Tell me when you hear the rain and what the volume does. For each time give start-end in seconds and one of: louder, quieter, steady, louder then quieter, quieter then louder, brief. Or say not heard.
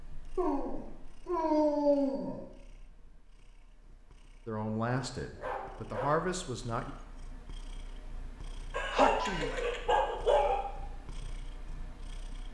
not heard.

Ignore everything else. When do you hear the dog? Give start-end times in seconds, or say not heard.
0.3-2.5, 5.2-6.3, 8.7-10.6.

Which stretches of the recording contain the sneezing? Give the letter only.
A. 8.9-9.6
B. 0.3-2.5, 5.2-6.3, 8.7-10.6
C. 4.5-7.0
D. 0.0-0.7
A.